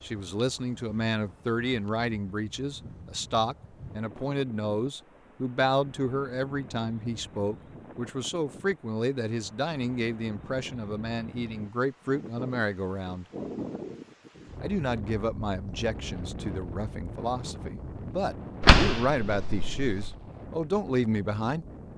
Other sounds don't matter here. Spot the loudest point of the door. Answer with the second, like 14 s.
19 s.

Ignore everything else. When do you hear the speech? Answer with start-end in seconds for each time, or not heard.
0.0-13.2, 14.6-21.6.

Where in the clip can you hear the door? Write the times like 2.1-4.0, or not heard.
18.6-20.1.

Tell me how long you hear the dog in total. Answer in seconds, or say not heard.
not heard.